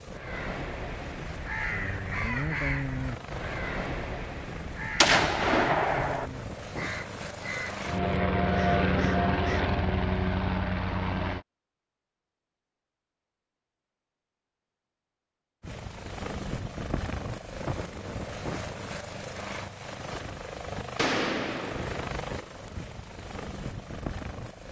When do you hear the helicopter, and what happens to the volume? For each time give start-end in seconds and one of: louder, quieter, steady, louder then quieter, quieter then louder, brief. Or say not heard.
0.0-11.4 louder
15.6-24.6 steady.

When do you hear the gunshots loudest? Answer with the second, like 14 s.
5 s.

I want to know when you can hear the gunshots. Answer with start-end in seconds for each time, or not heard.
5.0-6.2, 20.9-22.1.